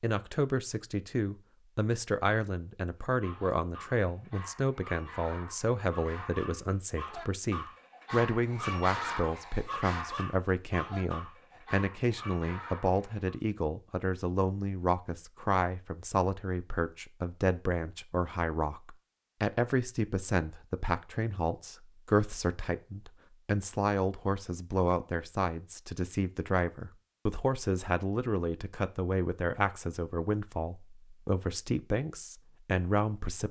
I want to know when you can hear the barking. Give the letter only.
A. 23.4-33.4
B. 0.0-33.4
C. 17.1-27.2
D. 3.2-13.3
D.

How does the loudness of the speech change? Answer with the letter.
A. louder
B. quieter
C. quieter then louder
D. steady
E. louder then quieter
D.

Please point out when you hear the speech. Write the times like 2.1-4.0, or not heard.
0.0-33.4.